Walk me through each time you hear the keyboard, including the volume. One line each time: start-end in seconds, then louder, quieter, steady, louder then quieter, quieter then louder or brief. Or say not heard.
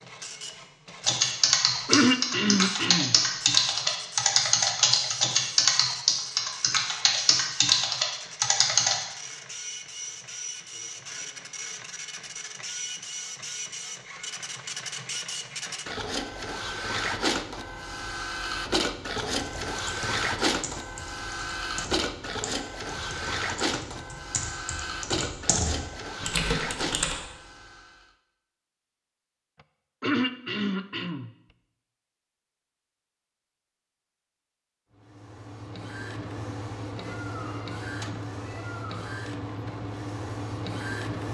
1.1-9.0 steady
19.2-27.1 louder.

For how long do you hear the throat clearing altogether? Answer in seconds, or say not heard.
3 s.